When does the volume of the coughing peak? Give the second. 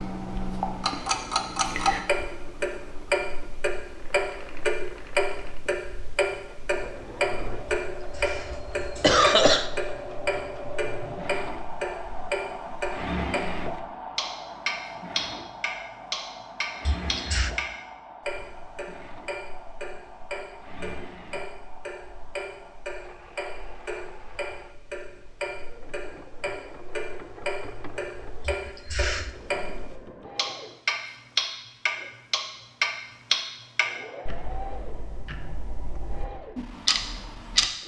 9 s.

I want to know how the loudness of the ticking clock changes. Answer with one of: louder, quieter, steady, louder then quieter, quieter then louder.
quieter then louder.